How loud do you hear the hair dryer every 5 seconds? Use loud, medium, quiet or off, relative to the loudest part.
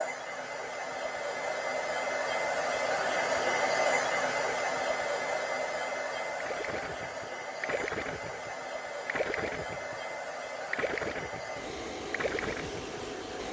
loud, medium, medium.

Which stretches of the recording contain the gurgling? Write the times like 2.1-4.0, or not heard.
6.4-13.0.